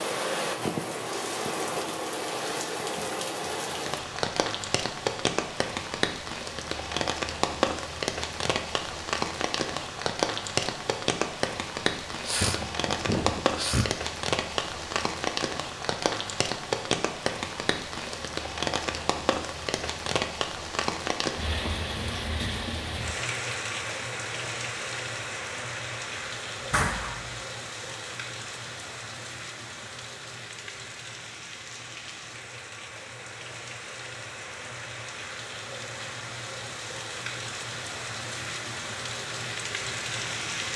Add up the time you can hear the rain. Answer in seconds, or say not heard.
41 s.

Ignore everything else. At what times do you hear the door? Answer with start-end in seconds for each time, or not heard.
12.6-13.2, 26.7-27.3.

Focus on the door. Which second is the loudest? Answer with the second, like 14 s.
27 s.